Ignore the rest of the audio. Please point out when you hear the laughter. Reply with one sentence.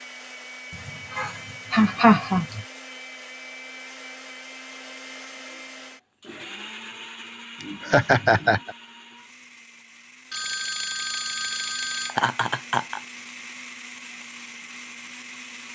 You can hear the laughter from 0.7 to 2.6 s, from 7.6 to 8.8 s and from 12.1 to 13.0 s.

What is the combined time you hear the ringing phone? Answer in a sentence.
You can hear the ringing phone for 2 seconds altogether.